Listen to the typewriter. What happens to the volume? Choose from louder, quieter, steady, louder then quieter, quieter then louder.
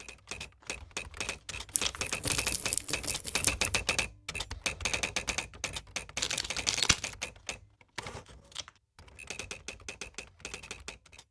quieter.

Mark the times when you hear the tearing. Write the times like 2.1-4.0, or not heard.
1.7-3.8, 6.2-7.2.